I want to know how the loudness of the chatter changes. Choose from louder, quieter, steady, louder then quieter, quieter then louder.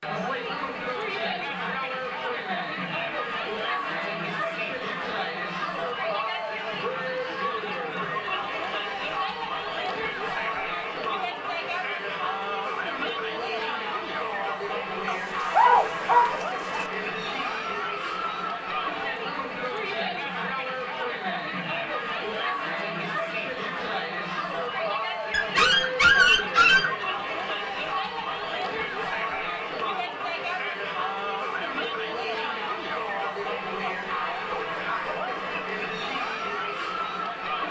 steady.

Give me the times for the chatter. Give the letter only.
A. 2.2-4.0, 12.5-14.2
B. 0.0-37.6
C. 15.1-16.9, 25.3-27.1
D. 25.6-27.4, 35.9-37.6
B.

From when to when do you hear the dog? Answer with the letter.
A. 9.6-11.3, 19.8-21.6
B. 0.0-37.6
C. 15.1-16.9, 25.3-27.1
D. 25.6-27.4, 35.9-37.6
C.